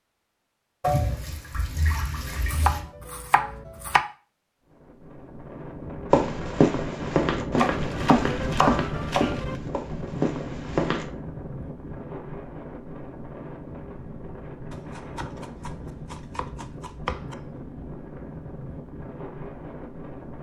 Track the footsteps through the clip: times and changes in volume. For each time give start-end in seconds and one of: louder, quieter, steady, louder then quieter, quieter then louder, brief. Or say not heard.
6.1-11.1 quieter.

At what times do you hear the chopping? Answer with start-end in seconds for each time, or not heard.
2.5-4.0, 7.5-9.6, 14.7-17.5.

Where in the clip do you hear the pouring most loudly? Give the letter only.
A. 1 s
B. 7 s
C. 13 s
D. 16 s
A.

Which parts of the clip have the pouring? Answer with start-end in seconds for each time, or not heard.
0.8-2.9.